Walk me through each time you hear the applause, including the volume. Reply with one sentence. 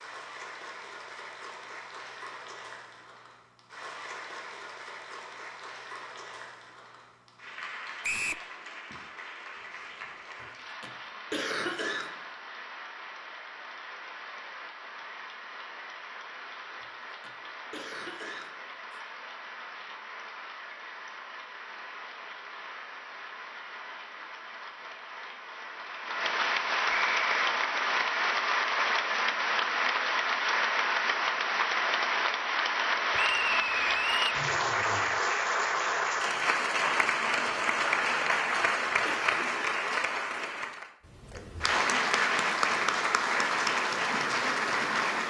You can hear the applause from 0.0 to 45.2 s, getting louder.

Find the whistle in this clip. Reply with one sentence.
You can hear the whistle from 8.0 to 8.4 s, from 26.9 to 27.3 s and from 33.1 to 34.5 s.